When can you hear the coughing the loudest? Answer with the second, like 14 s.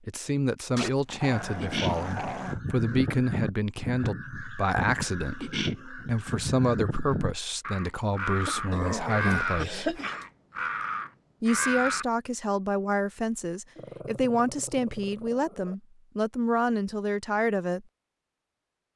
10 s.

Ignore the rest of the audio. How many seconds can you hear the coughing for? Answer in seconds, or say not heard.
2 s.